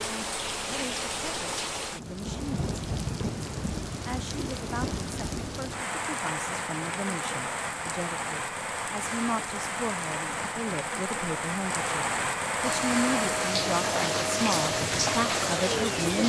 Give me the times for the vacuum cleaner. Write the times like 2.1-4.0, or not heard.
12.6-16.2.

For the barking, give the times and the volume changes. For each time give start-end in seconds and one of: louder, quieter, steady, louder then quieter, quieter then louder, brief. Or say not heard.
not heard.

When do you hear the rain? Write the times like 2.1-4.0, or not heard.
0.0-16.2.